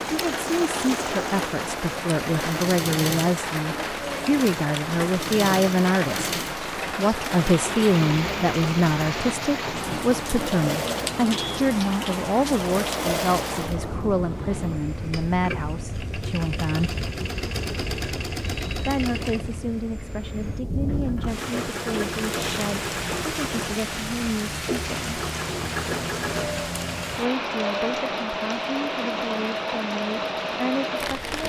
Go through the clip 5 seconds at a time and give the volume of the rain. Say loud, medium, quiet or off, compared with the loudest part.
loud, loud, loud, medium, loud, loud, loud.